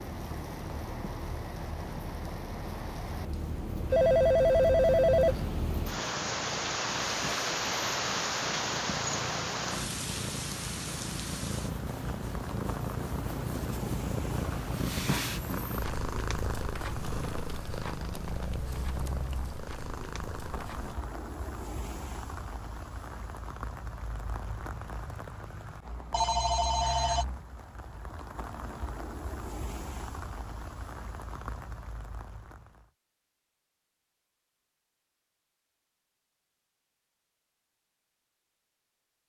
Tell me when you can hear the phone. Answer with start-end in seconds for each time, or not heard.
3.9-5.5, 26.1-27.2.